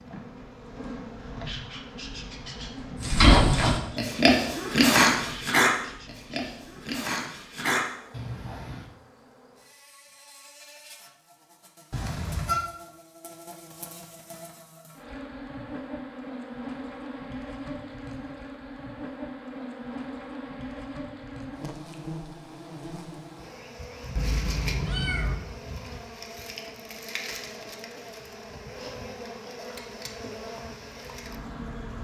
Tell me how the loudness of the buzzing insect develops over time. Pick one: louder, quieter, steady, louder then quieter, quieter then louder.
quieter then louder.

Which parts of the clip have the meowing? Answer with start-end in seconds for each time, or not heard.
11.9-12.7, 24.1-25.4.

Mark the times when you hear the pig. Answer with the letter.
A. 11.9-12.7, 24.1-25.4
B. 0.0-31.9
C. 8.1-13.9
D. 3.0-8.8
D.